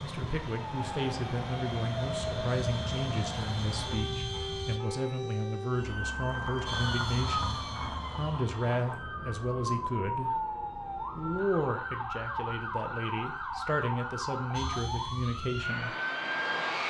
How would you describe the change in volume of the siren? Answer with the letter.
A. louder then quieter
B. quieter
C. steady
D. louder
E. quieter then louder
C.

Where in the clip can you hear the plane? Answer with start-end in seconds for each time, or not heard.
0.0-4.8, 6.7-8.8, 14.6-16.8.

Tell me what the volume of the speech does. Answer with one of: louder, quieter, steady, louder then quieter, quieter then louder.
steady.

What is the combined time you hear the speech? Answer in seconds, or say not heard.
15 s.